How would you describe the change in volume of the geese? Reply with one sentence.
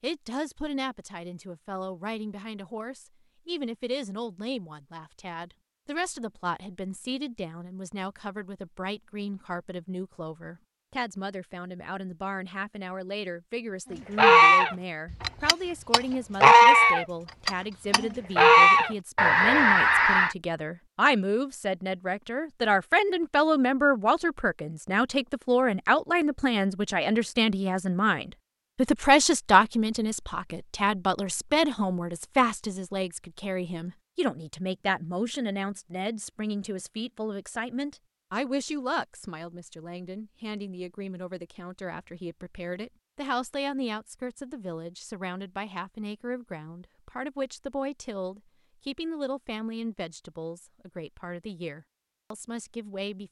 The loudness of the geese goes up, then down.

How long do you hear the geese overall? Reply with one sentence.
You can hear the geese for 6 seconds altogether.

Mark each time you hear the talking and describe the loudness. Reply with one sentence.
You can hear the talking from 0.0 to 53.2 s, getting louder then quieter.